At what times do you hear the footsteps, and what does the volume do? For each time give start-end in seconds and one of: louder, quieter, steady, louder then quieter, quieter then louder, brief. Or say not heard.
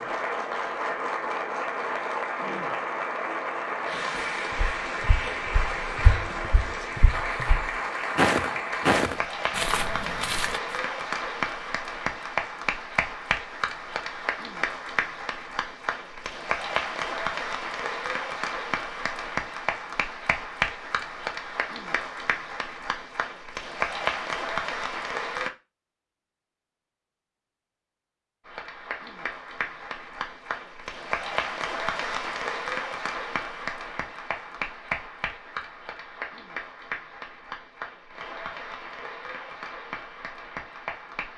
4.5-10.8 louder then quieter.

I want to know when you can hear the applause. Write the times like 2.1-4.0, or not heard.
0.0-25.5, 28.4-41.3.